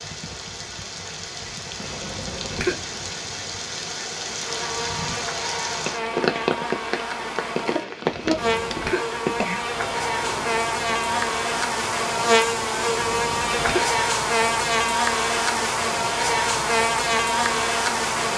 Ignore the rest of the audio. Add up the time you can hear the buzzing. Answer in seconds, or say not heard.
14 s.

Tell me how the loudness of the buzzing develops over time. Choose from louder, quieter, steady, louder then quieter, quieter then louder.
louder.